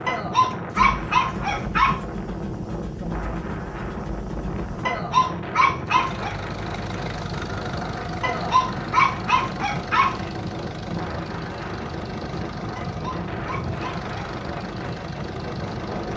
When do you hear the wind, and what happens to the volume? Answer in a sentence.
The wind can be heard from 0.0 to 16.1 s, at a steady volume.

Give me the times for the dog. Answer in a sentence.
You can hear the dog from 0.1 to 2.0 s, from 4.8 to 6.3 s, from 8.2 to 10.2 s and from 12.8 to 14.1 s.